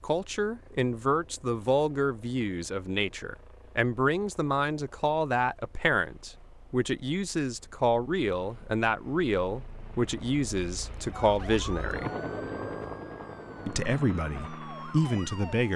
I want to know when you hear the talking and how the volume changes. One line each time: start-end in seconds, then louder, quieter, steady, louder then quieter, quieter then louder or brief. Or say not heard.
0.0-12.1 steady
13.7-15.7 brief.